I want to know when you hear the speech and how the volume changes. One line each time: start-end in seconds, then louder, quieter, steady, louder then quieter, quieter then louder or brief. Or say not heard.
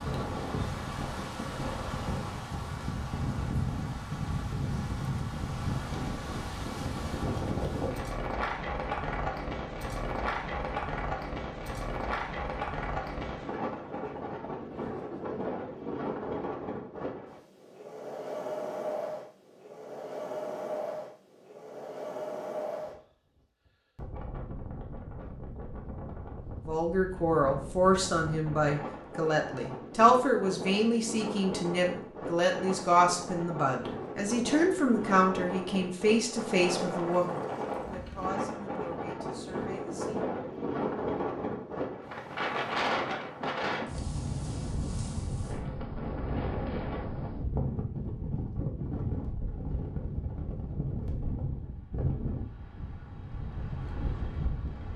26.6-40.3 quieter.